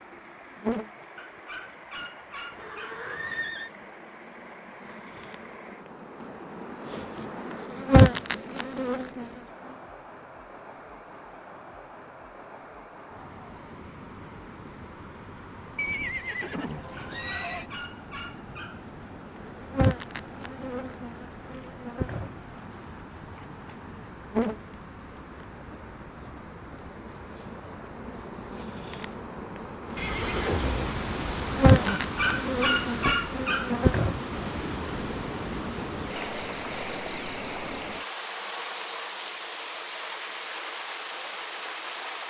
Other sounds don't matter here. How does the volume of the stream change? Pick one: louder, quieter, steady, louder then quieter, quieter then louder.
louder.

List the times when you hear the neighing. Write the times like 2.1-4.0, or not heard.
2.5-3.7, 15.8-17.7, 29.9-32.0.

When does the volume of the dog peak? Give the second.
33 s.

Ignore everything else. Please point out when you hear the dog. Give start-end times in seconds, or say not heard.
1.1-3.0, 17.1-18.9, 32.0-33.8.